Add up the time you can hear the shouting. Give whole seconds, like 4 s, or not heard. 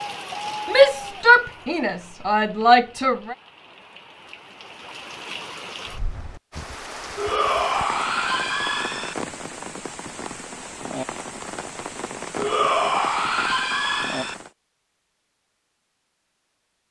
7 s.